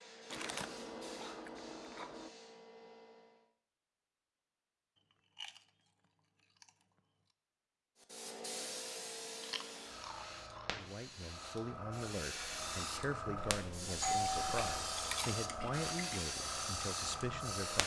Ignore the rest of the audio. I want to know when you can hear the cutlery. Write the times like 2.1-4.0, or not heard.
not heard.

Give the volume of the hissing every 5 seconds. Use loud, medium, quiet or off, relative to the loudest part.
quiet, medium, loud, loud.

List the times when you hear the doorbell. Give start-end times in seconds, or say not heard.
13.3-14.9.